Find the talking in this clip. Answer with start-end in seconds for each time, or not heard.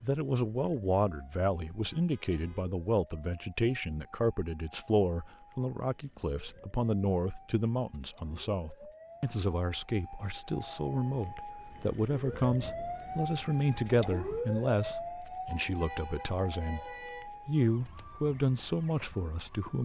0.0-19.7.